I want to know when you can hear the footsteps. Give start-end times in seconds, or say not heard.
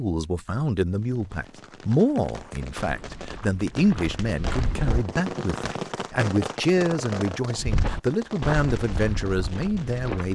2.8-5.0, 7.5-10.3.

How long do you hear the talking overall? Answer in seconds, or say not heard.
10 s.